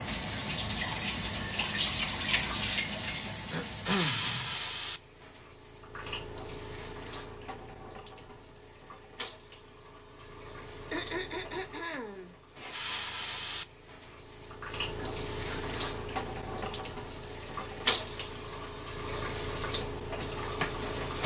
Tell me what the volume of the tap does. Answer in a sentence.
The volume of the tap goes down, then up.